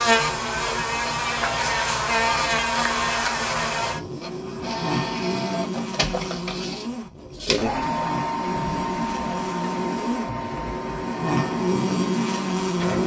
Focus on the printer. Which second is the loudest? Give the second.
8 s.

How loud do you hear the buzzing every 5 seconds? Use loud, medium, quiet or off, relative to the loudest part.
loud, medium, loud.